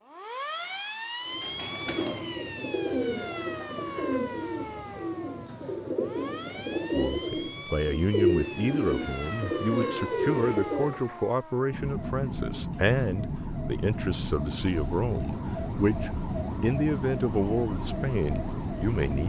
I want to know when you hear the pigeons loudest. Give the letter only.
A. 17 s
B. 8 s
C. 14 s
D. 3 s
B.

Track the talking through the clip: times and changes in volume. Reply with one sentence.
The talking can be heard from 7.0 to 19.2 s, at a steady volume.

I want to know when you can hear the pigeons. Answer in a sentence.
The pigeons can be heard from 1.2 to 11.2 s.